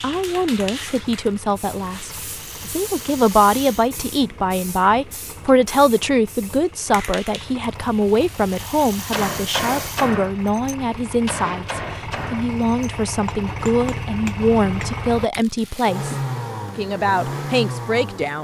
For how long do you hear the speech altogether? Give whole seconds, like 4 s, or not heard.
18 s.